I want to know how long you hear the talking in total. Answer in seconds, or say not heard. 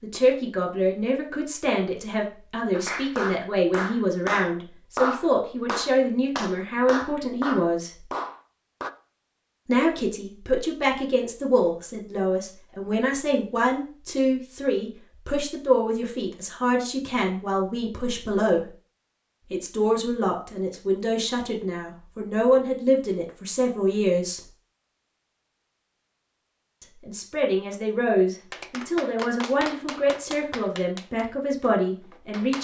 28 s.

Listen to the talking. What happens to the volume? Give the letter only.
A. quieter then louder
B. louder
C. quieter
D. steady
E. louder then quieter
D.